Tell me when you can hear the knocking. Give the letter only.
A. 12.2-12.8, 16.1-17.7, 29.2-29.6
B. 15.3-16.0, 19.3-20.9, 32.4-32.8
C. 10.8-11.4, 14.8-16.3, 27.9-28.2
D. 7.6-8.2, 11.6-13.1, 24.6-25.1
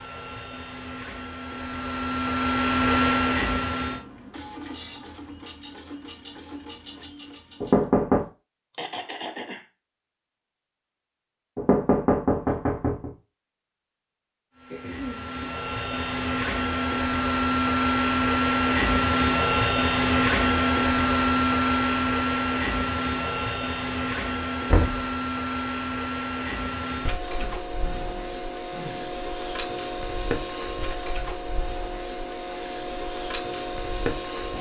D.